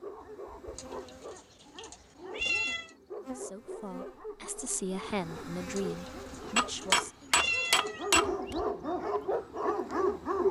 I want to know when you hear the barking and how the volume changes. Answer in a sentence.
The barking can be heard from 0.0 to 10.4 s, getting louder.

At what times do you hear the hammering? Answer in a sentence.
The hammering can be heard from 6.5 to 8.6 s.